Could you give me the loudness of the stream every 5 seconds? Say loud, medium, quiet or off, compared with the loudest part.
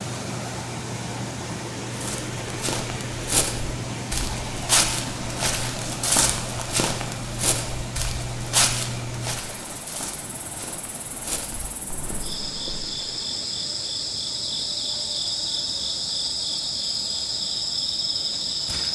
loud, loud, medium, quiet.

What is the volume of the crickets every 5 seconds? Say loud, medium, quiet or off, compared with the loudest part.
medium, medium, loud, loud.